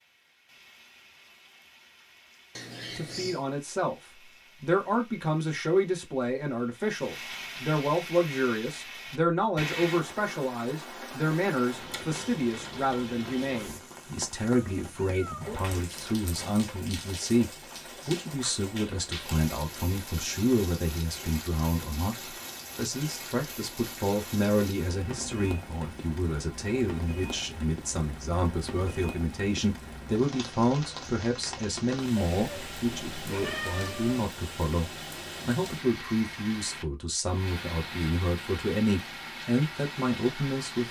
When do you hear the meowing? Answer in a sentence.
You can hear the meowing from 2.5 to 3.5 s, from 14.7 to 15.7 s and from 32.1 to 34.3 s.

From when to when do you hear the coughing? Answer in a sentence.
The coughing can't be heard in this clip.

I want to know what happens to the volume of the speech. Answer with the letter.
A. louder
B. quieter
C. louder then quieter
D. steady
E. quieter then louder
D.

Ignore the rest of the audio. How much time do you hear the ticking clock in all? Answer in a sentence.
You can't hear the ticking clock here.